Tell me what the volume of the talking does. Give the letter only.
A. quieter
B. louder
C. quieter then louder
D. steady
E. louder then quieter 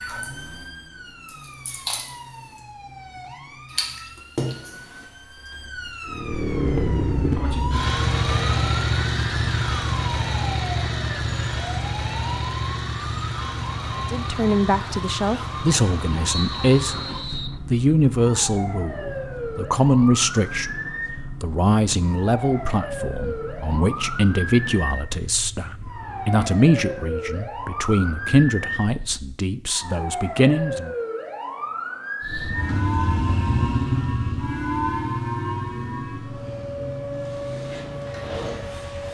D.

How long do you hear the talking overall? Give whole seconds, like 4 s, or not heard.
16 s.